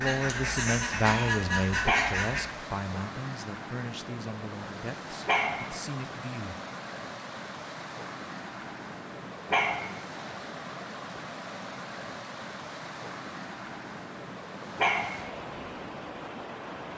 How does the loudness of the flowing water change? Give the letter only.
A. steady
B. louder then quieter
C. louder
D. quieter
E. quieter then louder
A.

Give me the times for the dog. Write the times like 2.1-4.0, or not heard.
1.9-2.3, 5.2-5.7, 9.5-9.9, 14.8-15.2.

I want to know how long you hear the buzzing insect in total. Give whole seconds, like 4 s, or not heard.
not heard.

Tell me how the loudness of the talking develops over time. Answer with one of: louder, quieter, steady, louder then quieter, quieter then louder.
quieter.